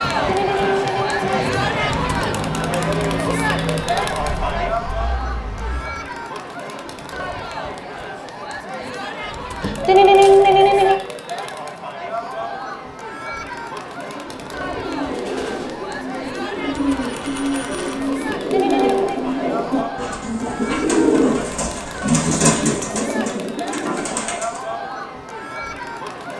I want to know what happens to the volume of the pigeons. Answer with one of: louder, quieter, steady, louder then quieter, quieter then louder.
louder.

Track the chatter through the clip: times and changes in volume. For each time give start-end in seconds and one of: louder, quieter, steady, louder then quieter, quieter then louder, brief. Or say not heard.
0.0-26.3 quieter.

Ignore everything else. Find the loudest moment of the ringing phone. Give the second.
10 s.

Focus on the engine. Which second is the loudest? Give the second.
3 s.